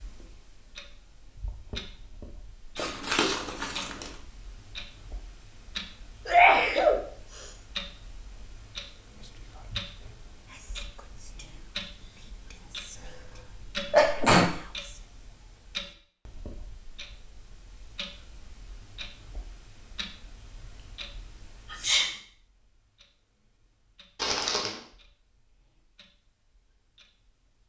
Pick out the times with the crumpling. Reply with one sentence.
The crumpling can be heard from 2.8 to 4.2 s and from 24.1 to 24.9 s.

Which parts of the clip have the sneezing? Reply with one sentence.
The sneezing can be heard from 6.2 to 7.5 s, from 12.9 to 14.6 s and from 21.7 to 22.1 s.